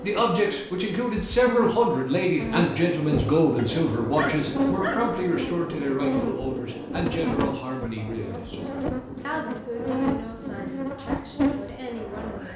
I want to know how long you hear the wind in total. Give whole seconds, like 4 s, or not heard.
10 s.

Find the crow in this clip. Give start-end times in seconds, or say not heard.
not heard.